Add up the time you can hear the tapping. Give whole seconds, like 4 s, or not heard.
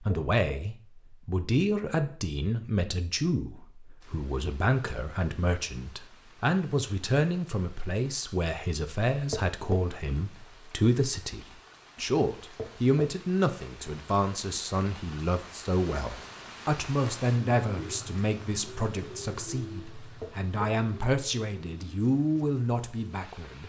2 s.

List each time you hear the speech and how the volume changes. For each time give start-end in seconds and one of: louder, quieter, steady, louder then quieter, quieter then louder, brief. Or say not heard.
0.0-23.6 steady.